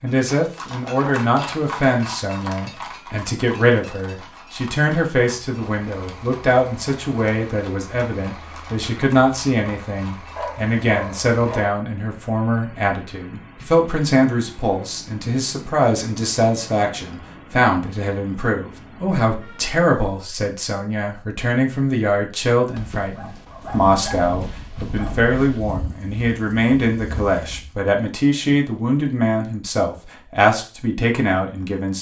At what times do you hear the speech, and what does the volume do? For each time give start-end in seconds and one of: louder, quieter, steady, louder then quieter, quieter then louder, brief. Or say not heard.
0.0-31.9 steady.